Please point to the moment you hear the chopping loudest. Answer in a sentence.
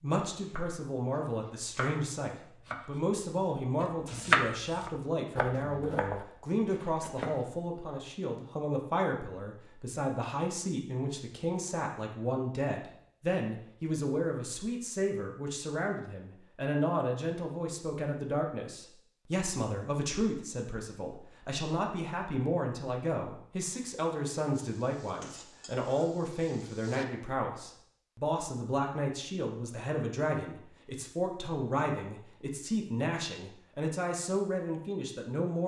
The volume of the chopping peaks at 4 seconds.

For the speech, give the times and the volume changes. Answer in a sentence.
You can hear the speech from 0.0 to 35.6 s, at a steady volume.